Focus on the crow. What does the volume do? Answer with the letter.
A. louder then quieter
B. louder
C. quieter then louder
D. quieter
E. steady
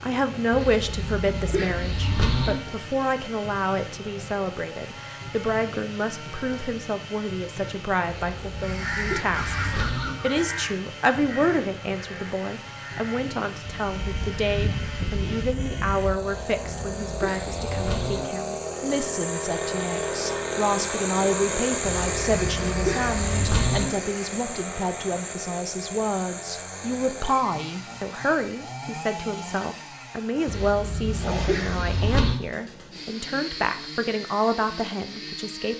C.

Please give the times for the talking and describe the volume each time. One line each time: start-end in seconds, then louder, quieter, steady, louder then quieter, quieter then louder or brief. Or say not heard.
0.0-35.7 steady.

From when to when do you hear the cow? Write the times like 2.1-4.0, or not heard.
0.5-2.5, 8.1-10.1, 16.2-18.2, 21.9-23.9, 30.4-32.4.